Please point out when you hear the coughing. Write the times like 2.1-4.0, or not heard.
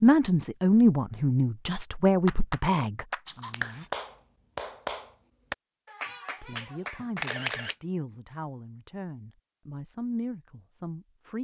not heard.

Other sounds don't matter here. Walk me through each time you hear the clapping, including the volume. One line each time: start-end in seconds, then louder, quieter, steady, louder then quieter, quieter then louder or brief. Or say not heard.
2.2-7.3 quieter.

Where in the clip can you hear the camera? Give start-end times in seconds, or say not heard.
3.2-3.9, 7.2-7.8.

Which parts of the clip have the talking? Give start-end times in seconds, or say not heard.
0.0-3.9, 6.4-11.3.